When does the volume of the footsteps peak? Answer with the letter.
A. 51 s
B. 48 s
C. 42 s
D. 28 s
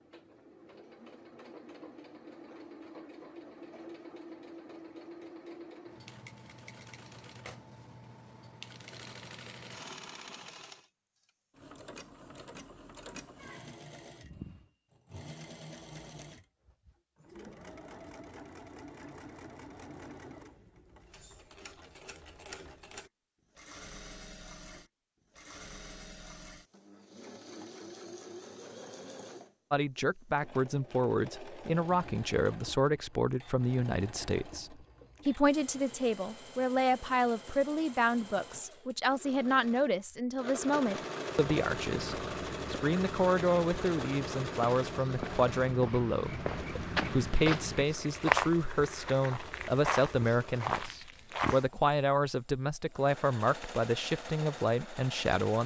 B.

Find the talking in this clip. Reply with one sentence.
The talking can be heard from 29.7 to 55.6 s.